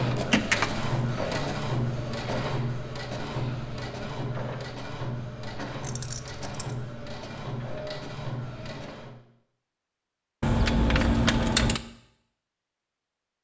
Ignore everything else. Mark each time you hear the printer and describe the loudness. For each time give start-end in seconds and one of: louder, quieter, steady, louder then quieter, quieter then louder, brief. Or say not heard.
0.0-9.2 quieter.